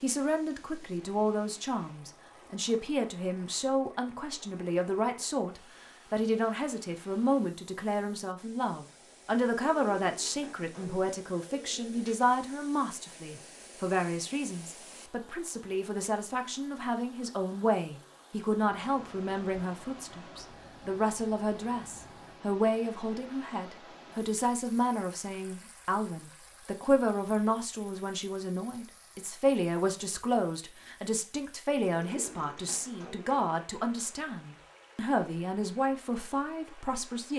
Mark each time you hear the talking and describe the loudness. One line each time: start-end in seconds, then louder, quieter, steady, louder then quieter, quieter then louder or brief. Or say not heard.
0.0-37.3 steady.